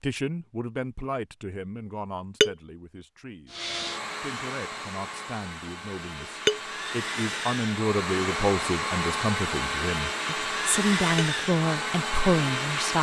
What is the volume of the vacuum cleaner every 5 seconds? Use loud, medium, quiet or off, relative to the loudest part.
medium, loud, loud.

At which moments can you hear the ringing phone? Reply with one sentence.
You can't hear the ringing phone here.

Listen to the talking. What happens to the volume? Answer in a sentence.
The volume of the talking goes down, then up.